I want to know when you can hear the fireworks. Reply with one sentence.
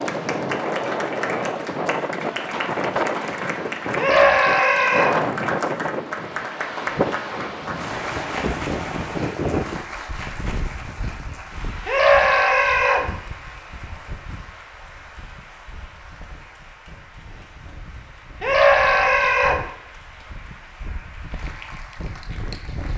You can't hear the fireworks here.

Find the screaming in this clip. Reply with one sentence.
You can hear the screaming from 4.0 to 5.2 s, from 11.8 to 13.1 s and from 18.4 to 19.6 s.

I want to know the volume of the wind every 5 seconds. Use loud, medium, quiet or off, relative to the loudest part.
loud, loud, quiet, quiet, quiet.